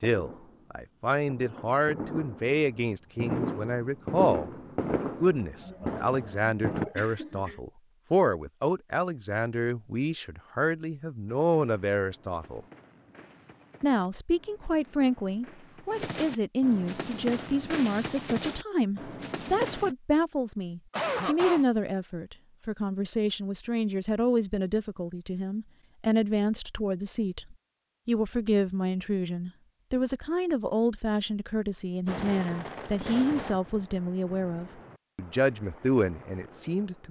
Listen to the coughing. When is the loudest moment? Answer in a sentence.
The loudest moment of the coughing is at 21 seconds.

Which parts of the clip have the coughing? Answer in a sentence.
You can hear the coughing from 5.6 to 7.6 s and from 20.9 to 21.6 s.